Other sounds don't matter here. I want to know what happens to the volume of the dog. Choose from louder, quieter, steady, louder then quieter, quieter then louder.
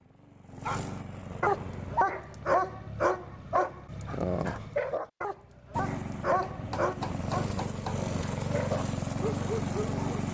quieter.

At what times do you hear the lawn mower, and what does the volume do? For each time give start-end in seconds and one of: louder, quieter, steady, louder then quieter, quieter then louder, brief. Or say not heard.
0.0-2.0 brief
5.7-10.2 louder.